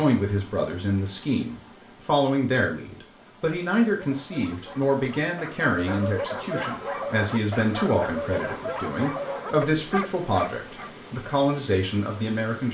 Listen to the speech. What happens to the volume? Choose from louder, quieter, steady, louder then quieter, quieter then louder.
steady.